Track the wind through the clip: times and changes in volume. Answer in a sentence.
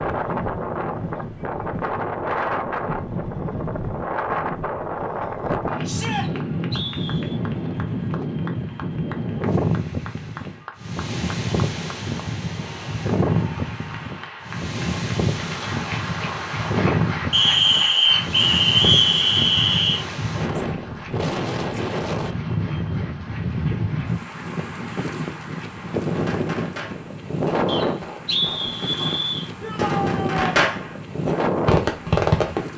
The wind can be heard from 0.0 to 32.7 s, at a steady volume.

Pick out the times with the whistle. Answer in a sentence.
The whistle can be heard from 6.1 to 7.4 s, from 17.3 to 20.0 s and from 27.6 to 29.5 s.